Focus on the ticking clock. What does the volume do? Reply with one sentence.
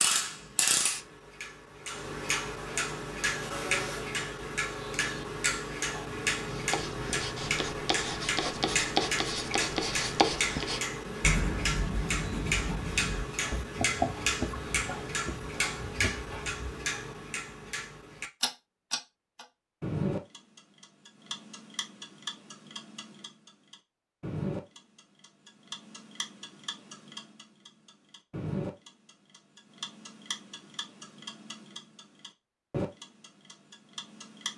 The volume of the ticking clock goes down.